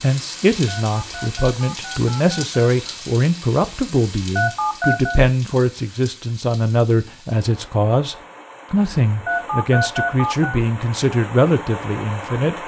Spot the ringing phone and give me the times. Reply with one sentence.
The ringing phone can be heard from 0.7 to 2.6 s, from 4.3 to 5.2 s and from 9.2 to 10.6 s.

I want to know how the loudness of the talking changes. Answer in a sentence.
The loudness of the talking stays about the same.